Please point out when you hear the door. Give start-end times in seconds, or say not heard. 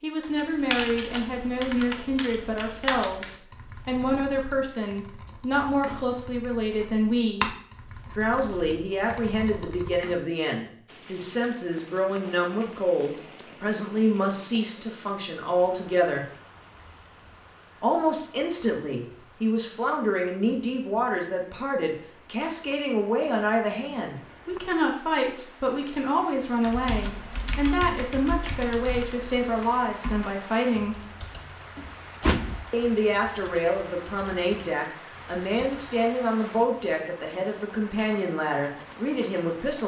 31.8-32.6.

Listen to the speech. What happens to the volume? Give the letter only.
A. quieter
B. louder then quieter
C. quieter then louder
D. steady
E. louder
D.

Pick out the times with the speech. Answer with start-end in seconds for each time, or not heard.
0.0-7.5, 8.2-16.2, 17.8-30.9, 32.7-39.8.